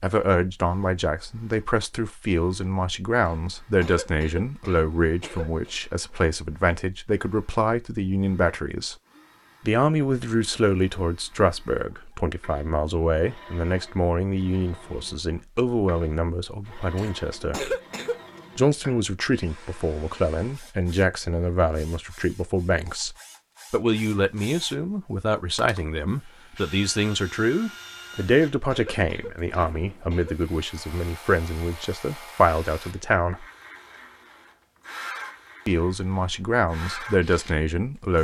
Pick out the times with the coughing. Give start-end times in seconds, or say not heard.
3.2-5.8, 16.9-18.2, 28.1-30.4.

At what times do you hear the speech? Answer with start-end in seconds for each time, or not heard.
0.0-8.9, 9.7-17.8, 18.6-33.5, 35.6-38.1.